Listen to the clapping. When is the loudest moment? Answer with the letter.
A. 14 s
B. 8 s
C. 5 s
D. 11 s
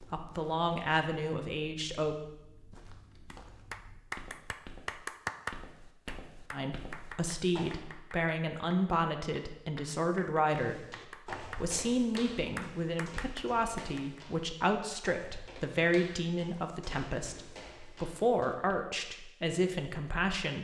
C.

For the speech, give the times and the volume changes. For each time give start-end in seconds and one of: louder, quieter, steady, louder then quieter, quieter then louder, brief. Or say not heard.
0.0-2.1 brief
6.5-20.5 steady.